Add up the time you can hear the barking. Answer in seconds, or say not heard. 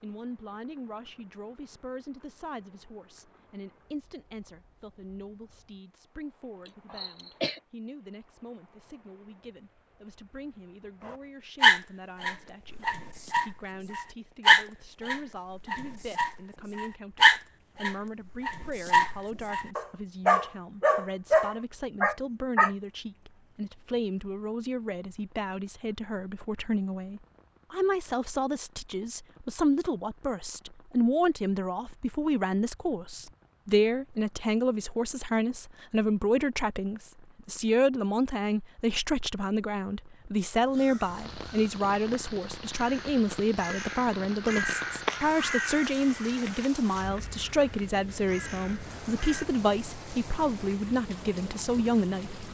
12 s.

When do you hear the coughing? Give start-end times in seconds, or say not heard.
6.7-7.6.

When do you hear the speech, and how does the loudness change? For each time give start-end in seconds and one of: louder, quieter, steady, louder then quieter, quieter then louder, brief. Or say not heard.
0.0-52.4 louder.